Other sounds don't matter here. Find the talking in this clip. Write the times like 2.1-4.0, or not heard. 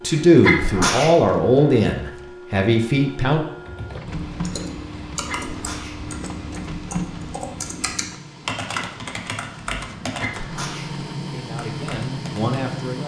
0.0-3.5, 11.2-13.0.